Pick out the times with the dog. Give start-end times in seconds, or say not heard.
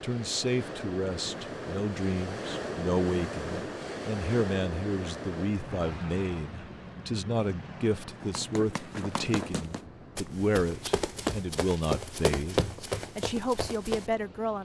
not heard.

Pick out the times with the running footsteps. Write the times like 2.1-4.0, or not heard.
8.2-14.2.